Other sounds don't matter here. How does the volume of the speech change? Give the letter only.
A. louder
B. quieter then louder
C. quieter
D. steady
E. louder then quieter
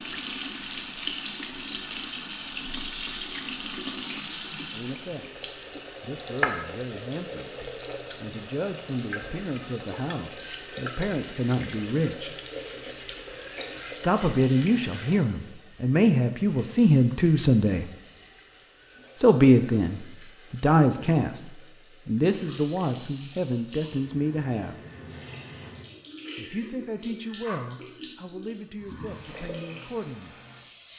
E.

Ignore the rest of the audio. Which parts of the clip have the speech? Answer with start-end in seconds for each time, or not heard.
4.7-12.3, 13.9-17.9, 19.1-24.8, 26.4-30.4.